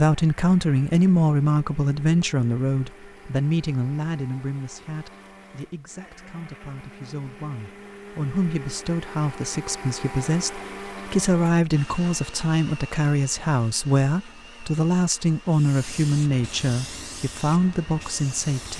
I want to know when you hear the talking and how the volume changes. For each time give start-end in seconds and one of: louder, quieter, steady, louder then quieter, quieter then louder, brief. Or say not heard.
0.0-18.7 quieter then louder.